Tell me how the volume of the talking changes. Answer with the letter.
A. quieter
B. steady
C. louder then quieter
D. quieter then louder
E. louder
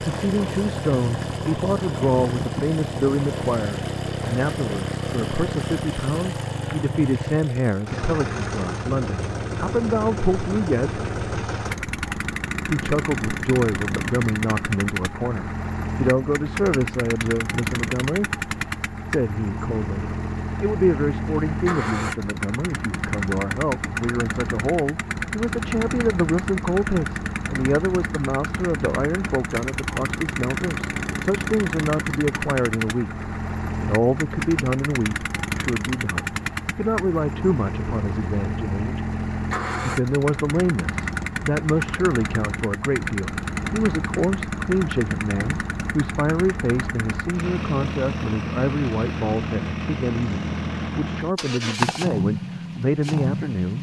B.